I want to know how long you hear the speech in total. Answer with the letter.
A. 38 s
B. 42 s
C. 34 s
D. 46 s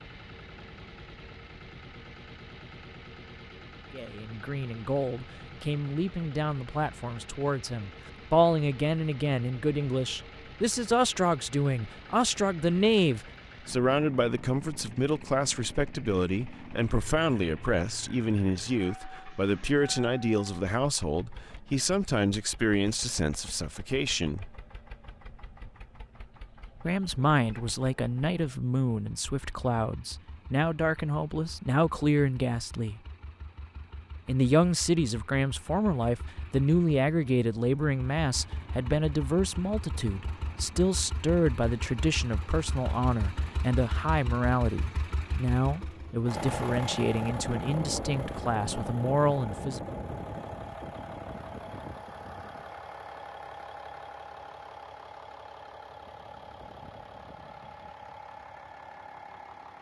B.